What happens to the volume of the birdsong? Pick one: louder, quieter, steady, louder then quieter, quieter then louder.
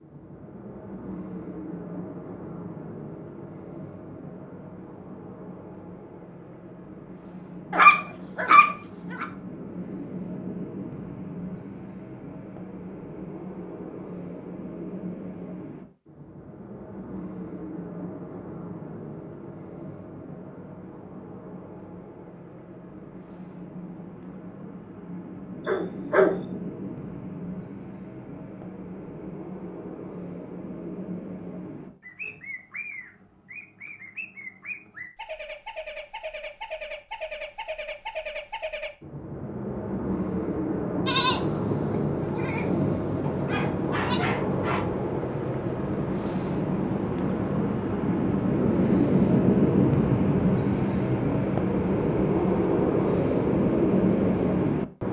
louder.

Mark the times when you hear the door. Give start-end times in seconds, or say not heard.
not heard.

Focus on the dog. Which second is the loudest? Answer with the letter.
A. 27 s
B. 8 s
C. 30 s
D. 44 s
B.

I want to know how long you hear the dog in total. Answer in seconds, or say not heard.
4 s.